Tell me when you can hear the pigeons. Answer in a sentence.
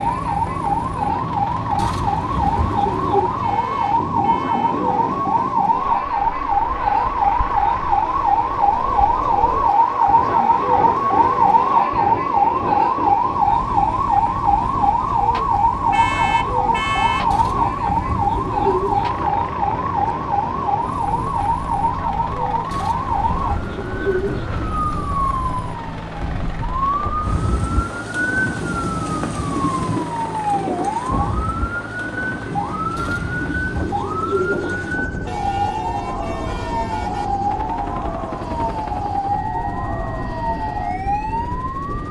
The pigeons can be heard from 1.8 to 3.4 s, from 17.3 to 19.3 s, from 22.7 to 24.7 s and from 33.0 to 35.0 s.